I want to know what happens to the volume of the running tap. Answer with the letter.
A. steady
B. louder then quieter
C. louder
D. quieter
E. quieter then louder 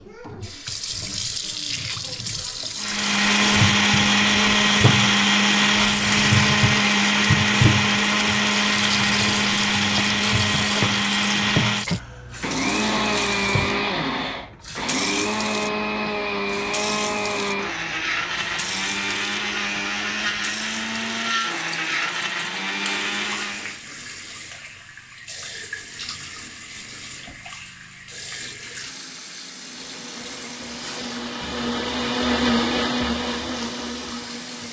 D.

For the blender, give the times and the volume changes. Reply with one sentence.
You can hear the blender from 2.8 to 23.8 s, getting quieter; and from 29.6 to 34.6 s, getting louder then quieter.